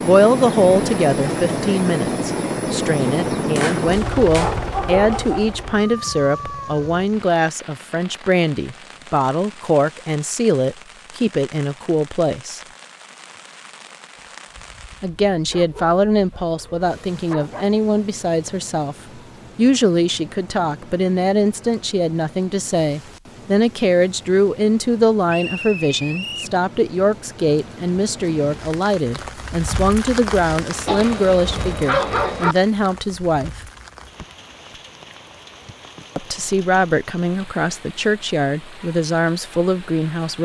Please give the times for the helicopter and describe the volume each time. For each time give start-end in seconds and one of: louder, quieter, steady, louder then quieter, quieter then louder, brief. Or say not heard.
0.0-7.0 quieter.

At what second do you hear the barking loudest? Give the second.
32 s.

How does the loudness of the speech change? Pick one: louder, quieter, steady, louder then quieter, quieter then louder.
steady.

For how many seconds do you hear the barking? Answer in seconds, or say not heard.
6 s.